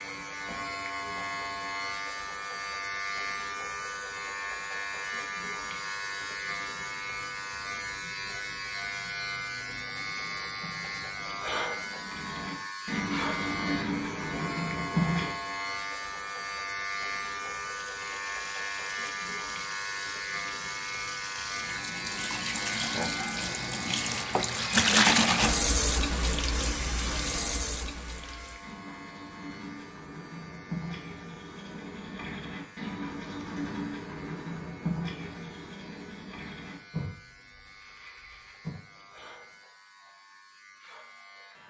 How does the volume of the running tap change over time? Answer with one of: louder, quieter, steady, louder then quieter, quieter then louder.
louder then quieter.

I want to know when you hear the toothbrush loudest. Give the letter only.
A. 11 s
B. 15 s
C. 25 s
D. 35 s
B.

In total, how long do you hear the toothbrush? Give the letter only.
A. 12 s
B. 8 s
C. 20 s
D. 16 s
D.